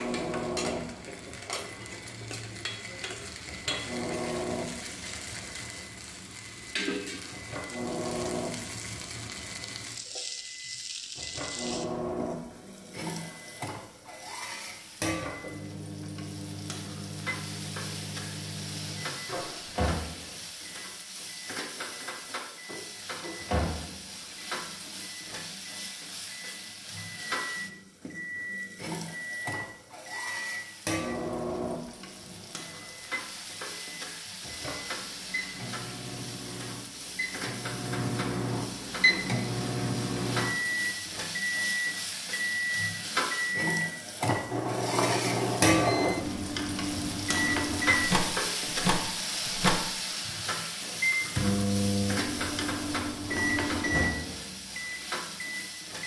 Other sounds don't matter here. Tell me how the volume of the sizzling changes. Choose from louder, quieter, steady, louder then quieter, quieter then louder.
louder.